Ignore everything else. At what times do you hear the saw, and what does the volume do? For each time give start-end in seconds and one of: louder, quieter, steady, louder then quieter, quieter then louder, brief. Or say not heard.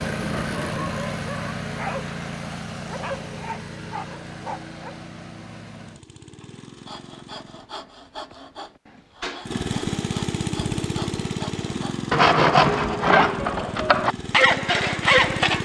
6.8-15.6 louder.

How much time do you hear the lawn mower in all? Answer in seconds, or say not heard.
14 s.